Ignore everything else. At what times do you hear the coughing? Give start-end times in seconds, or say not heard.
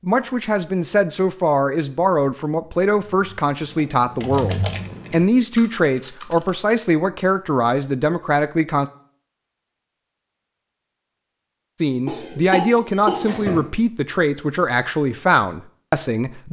12.1-13.7.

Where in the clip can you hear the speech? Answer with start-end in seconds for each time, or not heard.
0.0-8.9, 11.8-16.4.